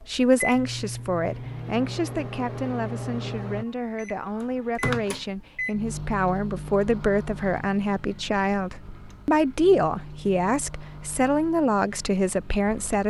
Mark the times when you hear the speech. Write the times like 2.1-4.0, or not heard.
0.0-13.0.